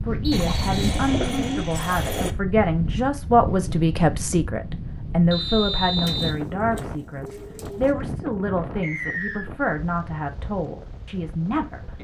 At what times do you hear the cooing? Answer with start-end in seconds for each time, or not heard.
0.3-2.4, 6.0-8.0.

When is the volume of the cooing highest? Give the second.
1 s.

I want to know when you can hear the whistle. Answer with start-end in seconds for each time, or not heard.
0.2-1.0, 5.3-6.3, 8.8-9.5.